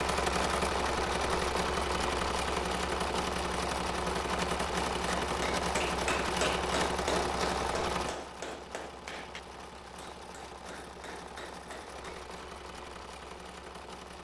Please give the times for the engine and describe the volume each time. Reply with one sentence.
You can hear the engine from 0.0 to 14.2 s, getting quieter.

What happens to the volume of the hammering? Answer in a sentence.
The volume of the hammering goes down.